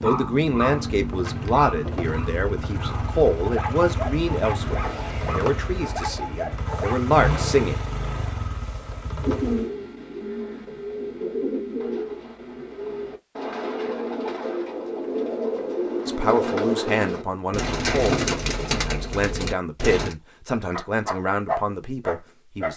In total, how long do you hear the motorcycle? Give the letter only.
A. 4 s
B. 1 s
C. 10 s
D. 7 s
C.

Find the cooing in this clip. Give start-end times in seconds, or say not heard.
9.2-20.1.